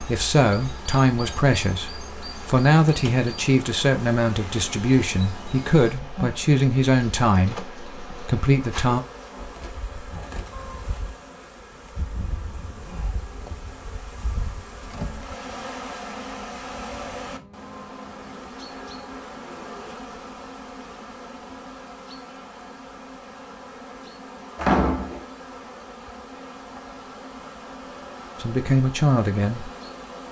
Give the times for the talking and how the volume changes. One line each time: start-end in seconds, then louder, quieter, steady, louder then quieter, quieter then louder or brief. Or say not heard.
0.0-9.0 steady
28.4-29.7 brief.